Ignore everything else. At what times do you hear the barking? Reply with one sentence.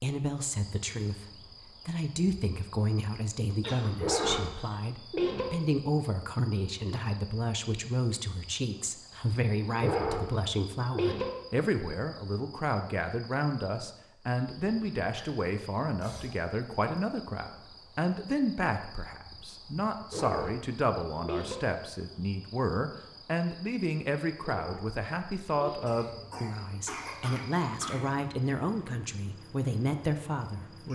You can hear the barking from 4.0 to 5.5 s, from 9.8 to 11.2 s, from 20.1 to 21.6 s and from 24.4 to 25.9 s.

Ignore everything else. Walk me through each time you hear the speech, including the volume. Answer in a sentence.
The speech can be heard from 0.0 to 30.8 s, at a steady volume.